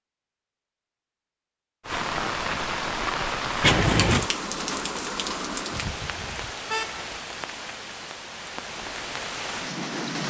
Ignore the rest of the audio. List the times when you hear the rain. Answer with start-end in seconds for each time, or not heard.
1.8-10.2.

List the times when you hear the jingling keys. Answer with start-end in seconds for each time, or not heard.
3.6-4.3.